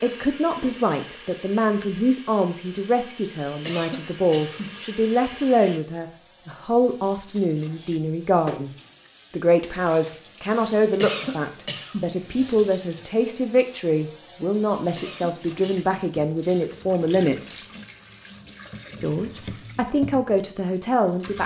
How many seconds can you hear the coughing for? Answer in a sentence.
The coughing can be heard for 3 seconds in total.